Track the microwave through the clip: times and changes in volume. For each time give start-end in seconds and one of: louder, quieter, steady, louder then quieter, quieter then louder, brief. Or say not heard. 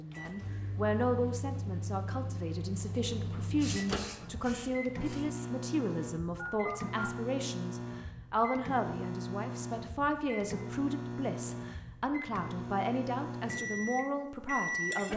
0.0-15.1 steady.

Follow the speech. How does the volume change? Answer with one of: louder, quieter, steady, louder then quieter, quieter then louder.
steady.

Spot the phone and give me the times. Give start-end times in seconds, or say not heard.
6.3-7.1.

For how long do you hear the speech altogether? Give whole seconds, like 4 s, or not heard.
15 s.